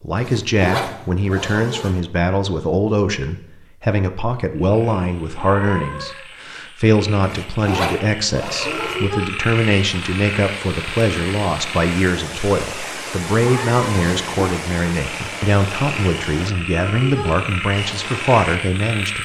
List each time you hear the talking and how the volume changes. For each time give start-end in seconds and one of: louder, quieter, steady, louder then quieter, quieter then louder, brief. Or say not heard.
0.0-19.2 steady.